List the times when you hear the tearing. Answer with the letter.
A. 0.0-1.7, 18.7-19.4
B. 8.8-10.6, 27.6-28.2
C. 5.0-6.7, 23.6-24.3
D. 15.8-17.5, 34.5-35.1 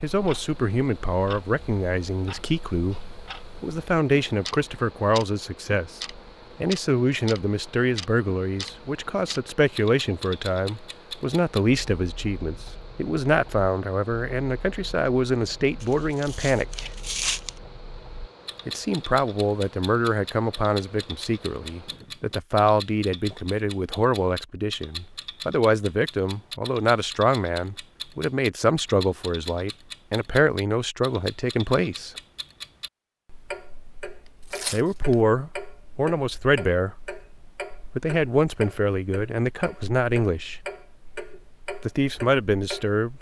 D.